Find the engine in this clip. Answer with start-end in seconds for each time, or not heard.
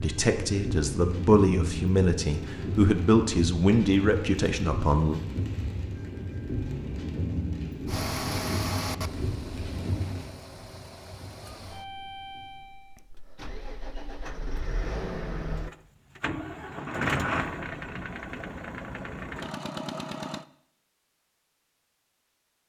7.8-20.4.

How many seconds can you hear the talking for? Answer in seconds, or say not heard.
5 s.